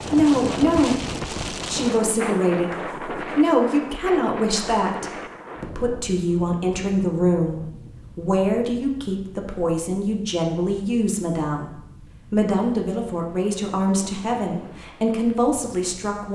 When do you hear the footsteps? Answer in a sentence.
The footsteps can't be heard in this clip.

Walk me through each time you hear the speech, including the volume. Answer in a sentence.
The speech can be heard from 0.1 to 16.2 s, at a steady volume.